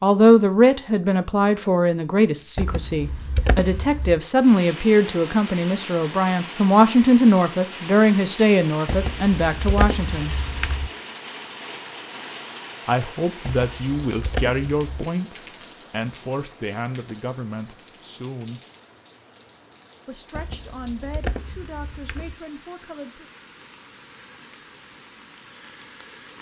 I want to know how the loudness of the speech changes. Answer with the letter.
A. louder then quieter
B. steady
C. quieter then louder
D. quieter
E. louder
D.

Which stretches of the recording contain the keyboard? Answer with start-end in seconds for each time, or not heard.
2.5-4.2, 8.8-10.9, 13.4-15.1, 20.3-22.4.